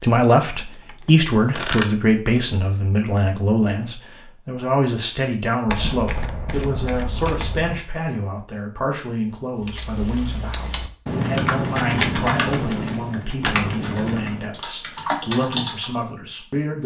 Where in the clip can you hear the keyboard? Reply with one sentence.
You can hear the keyboard from 9.7 to 16.0 s.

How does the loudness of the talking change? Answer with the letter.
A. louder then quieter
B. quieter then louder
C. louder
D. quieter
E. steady
D.